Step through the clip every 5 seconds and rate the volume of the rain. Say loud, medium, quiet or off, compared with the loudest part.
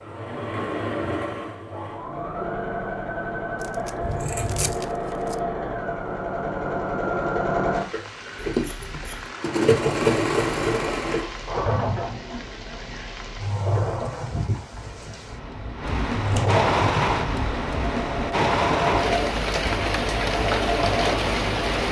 off, quiet, quiet, loud, loud.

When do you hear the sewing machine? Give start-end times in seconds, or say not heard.
0.0-21.8.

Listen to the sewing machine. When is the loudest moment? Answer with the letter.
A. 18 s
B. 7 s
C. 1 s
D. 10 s
D.